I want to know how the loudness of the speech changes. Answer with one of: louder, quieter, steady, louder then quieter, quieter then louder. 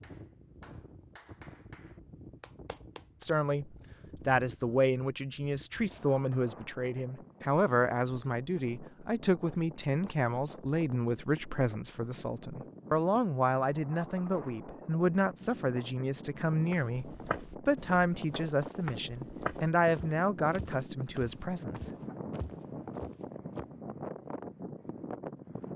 steady.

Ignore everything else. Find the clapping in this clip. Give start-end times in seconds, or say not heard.
0.0-3.3.